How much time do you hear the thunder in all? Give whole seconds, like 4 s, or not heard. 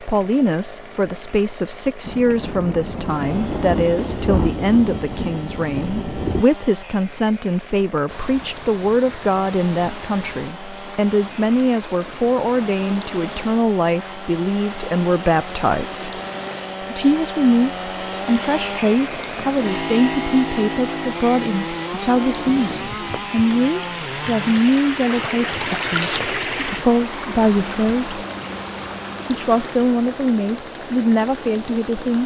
5 s.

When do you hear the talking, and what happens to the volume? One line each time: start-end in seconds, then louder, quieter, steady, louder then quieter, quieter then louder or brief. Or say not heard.
0.0-16.1 steady
16.8-28.2 steady
29.2-32.2 brief.